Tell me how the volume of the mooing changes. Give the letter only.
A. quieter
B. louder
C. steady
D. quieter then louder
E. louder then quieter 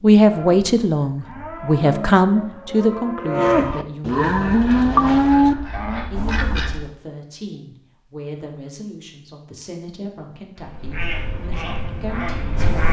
B.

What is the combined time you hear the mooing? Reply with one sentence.
The mooing can be heard for 6 seconds in total.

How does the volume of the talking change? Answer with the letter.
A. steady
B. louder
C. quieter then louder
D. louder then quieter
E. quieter
E.